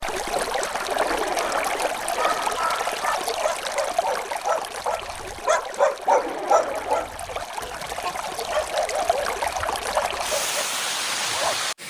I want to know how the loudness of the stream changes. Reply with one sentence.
The volume of the stream goes down, then up.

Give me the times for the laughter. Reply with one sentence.
You can hear the laughter from 0.8 to 2.5 s and from 6.0 to 7.2 s.